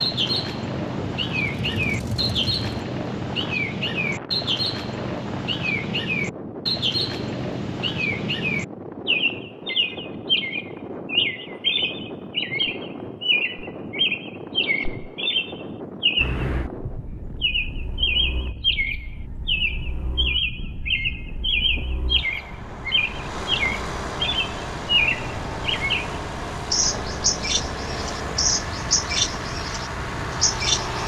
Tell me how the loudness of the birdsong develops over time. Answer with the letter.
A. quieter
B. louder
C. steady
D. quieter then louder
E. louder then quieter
C.